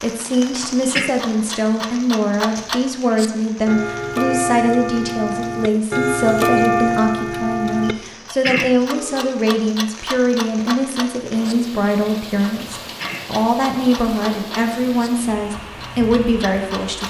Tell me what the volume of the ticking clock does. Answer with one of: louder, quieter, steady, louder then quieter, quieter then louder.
louder then quieter.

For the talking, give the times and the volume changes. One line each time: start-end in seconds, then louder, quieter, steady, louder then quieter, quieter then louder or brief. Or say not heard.
0.0-17.0 steady.